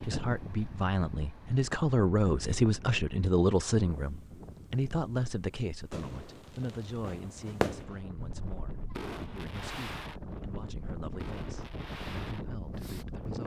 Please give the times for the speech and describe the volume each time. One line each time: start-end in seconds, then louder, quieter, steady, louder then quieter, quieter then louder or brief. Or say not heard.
0.0-13.4 quieter.